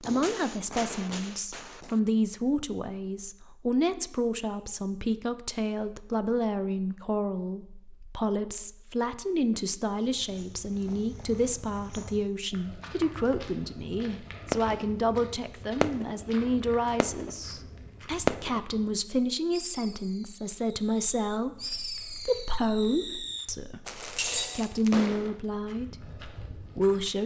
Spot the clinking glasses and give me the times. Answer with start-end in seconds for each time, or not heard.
23.9-24.7.